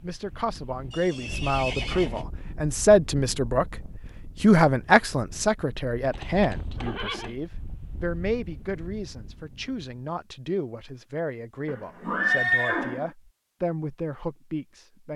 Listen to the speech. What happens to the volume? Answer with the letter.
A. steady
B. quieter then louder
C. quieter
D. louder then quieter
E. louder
C.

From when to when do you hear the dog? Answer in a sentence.
You can't hear the dog here.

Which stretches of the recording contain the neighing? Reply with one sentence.
The neighing can be heard from 0.9 to 2.2 s, from 6.1 to 7.4 s and from 11.7 to 13.1 s.